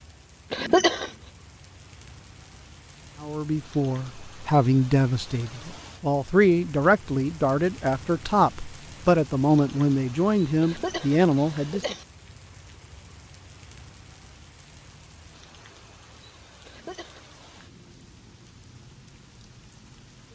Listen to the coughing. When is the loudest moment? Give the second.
1 s.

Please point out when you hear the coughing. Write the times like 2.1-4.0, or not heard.
0.5-1.1, 10.6-12.1, 16.6-17.7.